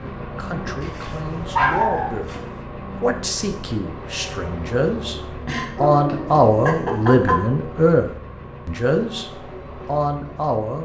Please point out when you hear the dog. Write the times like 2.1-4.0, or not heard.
0.8-2.4, 5.5-7.4.